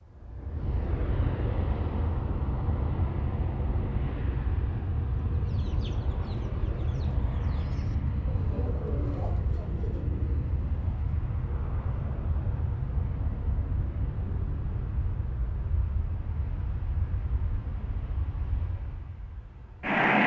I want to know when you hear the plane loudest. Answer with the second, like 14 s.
20 s.